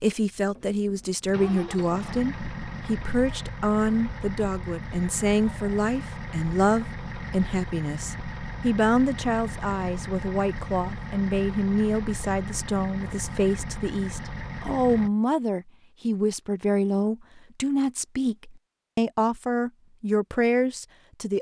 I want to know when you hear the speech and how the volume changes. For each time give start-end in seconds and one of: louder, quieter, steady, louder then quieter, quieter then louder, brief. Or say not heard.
0.0-21.3 steady.